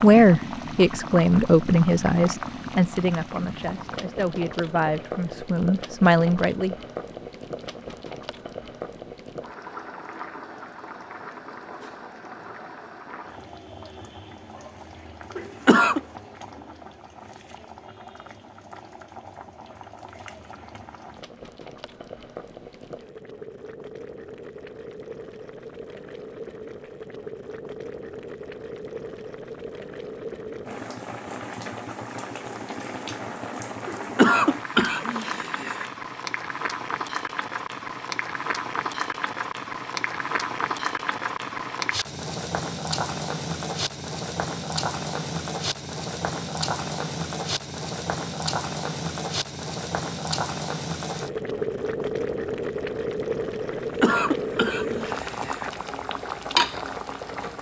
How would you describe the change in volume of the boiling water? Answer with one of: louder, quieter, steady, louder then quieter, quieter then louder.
quieter then louder.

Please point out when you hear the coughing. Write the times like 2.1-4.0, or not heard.
15.3-16.0, 33.9-35.9, 53.7-55.7.